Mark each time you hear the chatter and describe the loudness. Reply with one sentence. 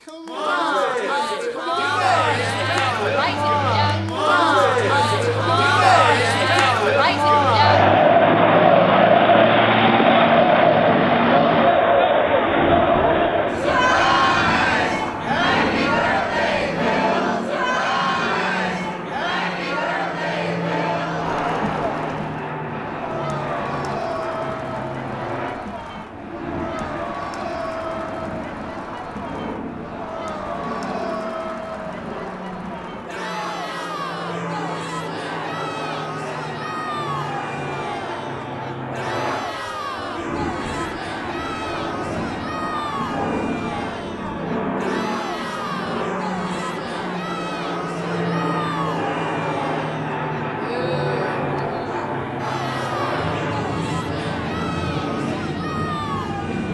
You can hear the chatter from 0.1 to 56.6 s, getting quieter.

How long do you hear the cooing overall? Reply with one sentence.
You can't hear the cooing here.